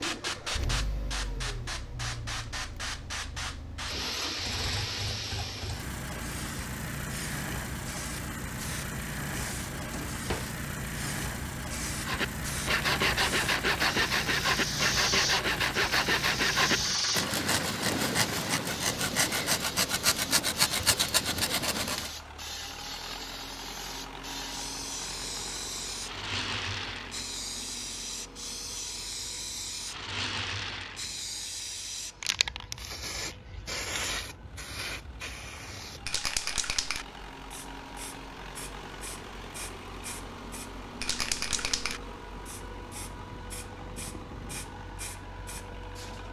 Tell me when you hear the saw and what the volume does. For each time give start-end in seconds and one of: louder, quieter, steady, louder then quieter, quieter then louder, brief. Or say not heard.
12.1-22.1 steady.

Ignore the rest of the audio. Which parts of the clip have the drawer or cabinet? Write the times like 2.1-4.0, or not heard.
9.7-10.6.